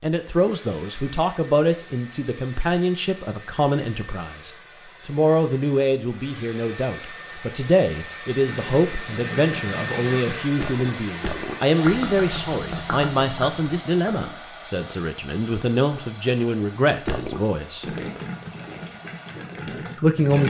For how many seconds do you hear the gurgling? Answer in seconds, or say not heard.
9 s.